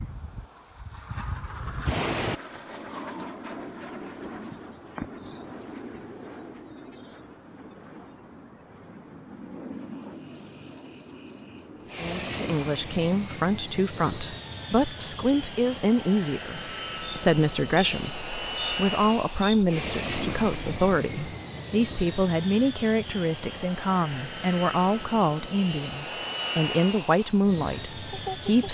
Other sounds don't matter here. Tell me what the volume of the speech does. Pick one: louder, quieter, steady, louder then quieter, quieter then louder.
steady.